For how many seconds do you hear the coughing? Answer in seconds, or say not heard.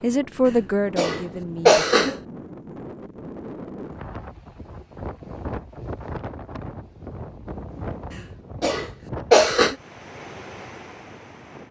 3 s.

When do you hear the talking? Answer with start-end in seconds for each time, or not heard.
0.0-1.9.